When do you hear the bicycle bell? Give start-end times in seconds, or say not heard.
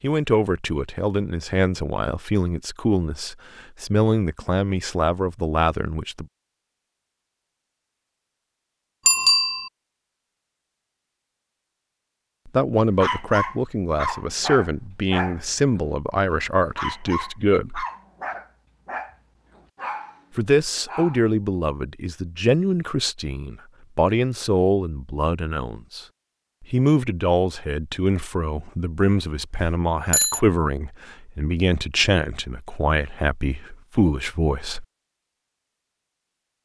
9.1-9.7, 29.6-30.4.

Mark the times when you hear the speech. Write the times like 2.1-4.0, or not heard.
0.0-6.2, 12.4-17.9, 20.4-34.9.